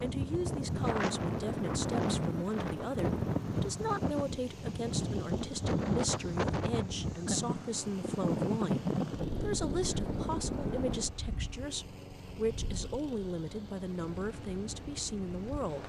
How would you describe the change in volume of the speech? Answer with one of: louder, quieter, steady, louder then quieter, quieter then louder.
steady.